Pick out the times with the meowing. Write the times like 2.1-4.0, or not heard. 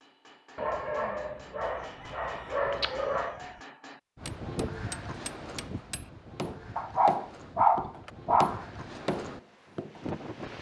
not heard.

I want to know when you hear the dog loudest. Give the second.
8 s.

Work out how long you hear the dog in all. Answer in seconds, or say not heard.
5 s.